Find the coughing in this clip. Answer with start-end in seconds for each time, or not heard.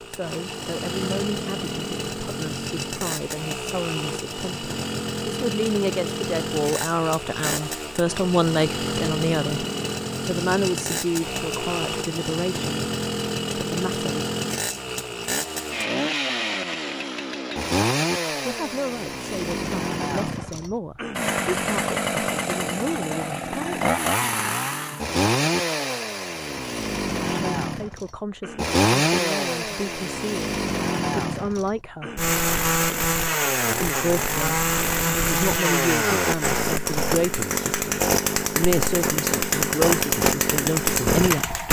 not heard.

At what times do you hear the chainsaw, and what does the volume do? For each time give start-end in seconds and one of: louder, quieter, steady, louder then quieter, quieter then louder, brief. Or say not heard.
0.0-41.6 louder.